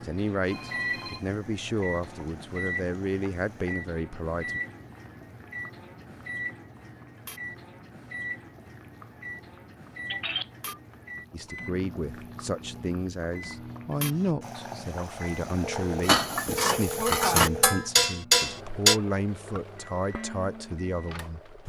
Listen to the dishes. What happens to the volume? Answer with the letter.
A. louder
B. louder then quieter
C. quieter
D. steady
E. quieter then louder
B.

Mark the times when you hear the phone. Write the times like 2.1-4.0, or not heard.
0.5-1.4, 10.1-10.8, 15.6-17.9.